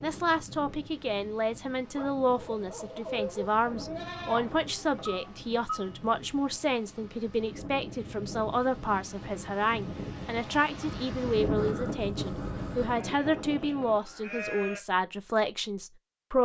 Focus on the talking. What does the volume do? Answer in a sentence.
The loudness of the talking stays about the same.